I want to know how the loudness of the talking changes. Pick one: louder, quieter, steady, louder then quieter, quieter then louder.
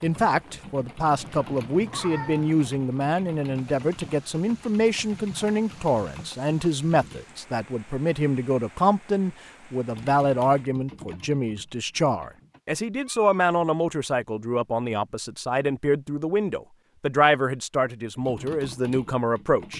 steady.